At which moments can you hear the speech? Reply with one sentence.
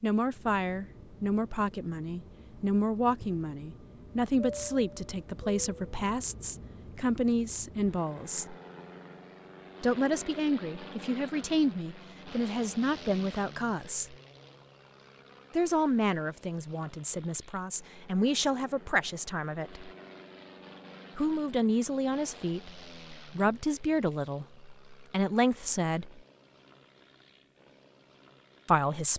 You can hear the speech from 0.0 to 8.6 s, from 9.8 to 14.2 s, from 15.5 to 19.9 s, from 21.1 to 26.2 s and from 28.6 to 29.1 s.